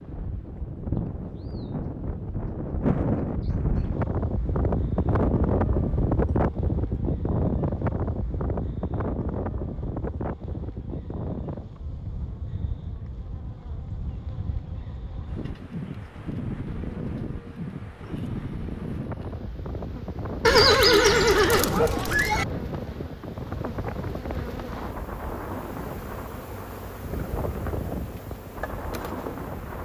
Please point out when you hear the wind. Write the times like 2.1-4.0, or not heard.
0.0-29.7.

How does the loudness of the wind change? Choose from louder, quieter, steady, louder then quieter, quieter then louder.
quieter.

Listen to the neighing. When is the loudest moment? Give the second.
21 s.